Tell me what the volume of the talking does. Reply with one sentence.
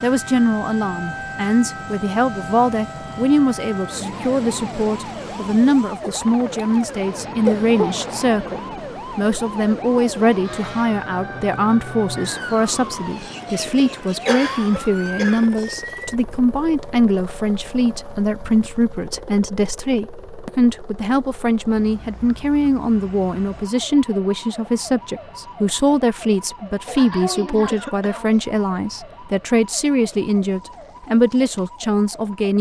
The volume of the talking stays about the same.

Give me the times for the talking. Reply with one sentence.
You can hear the talking from 0.0 to 32.5 s.